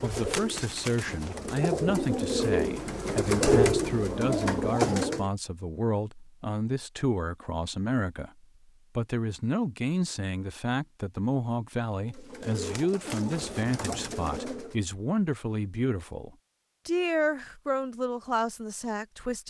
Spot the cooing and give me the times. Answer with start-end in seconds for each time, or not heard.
0.0-5.3, 12.1-14.8.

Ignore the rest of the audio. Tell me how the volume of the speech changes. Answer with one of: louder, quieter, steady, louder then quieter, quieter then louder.
steady.